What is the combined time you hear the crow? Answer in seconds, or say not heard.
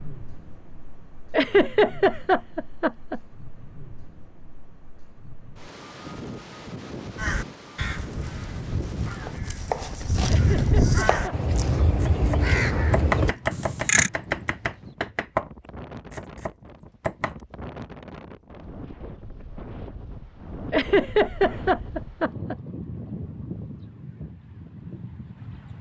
7 s.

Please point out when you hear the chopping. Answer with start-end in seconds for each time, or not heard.
9.2-15.5, 16.1-17.4.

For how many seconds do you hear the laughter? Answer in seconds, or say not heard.
5 s.